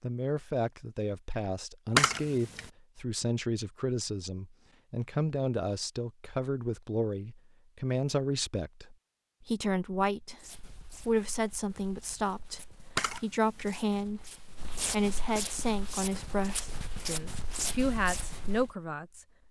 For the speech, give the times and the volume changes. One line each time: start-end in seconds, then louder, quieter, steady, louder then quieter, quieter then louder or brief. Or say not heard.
0.0-19.2 steady.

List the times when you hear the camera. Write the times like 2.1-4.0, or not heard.
1.9-2.6, 12.9-13.7.